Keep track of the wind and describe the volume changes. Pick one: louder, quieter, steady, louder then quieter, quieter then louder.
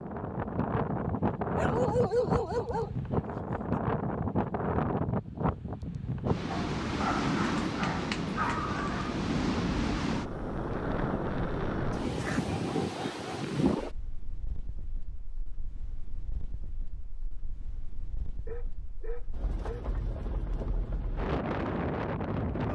quieter.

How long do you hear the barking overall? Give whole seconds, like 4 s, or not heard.
7 s.